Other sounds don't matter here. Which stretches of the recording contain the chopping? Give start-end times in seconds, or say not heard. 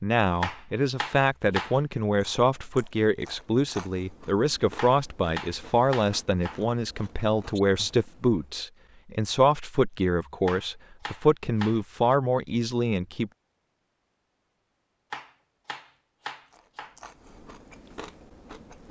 0.4-1.8, 4.8-6.6, 10.4-12.2, 15.1-16.9.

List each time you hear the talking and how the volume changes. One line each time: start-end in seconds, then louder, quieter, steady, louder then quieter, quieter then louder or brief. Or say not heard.
0.0-13.3 steady.